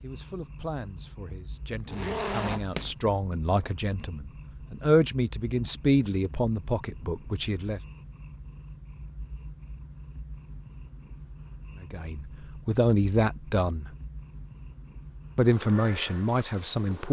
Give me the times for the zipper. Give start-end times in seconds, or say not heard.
1.9-3.0.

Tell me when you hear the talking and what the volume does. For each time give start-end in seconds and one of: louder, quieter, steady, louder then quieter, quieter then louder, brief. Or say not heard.
0.0-7.8 louder then quieter
11.8-13.8 brief
15.3-17.0 brief.